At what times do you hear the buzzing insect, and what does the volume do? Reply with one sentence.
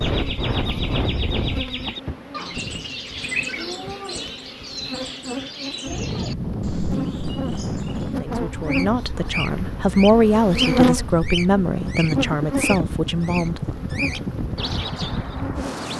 The buzzing insect can be heard from 0.1 to 15.8 s, getting louder then quieter.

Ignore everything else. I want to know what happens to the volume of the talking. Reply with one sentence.
The volume of the talking goes up, then down.